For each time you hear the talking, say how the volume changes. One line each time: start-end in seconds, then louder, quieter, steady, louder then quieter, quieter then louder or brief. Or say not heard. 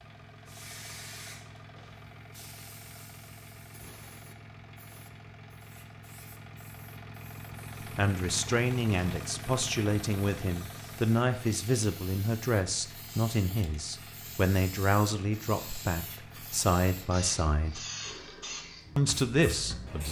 8.0-17.9 steady
18.9-20.0 brief.